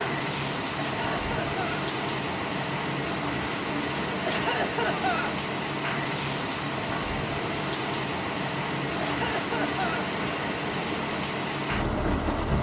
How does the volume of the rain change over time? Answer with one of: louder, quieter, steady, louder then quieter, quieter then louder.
steady.